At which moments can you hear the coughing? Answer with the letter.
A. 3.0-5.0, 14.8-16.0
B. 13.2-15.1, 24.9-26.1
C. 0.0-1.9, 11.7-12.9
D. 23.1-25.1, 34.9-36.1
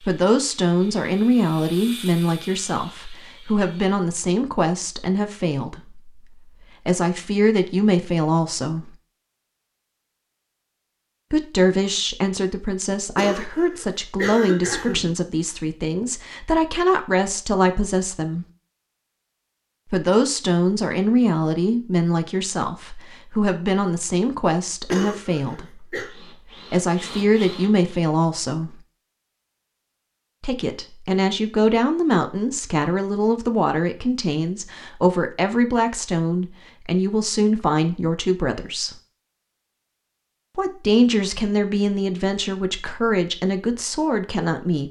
B.